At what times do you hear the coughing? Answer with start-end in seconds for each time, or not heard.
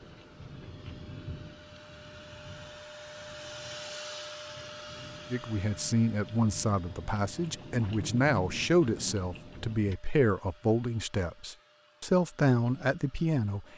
not heard.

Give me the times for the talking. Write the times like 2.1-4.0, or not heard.
5.3-13.7.